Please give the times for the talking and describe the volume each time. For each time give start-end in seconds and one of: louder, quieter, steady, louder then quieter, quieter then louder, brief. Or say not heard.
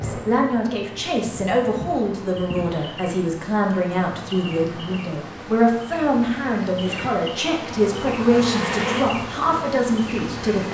0.0-10.6 steady.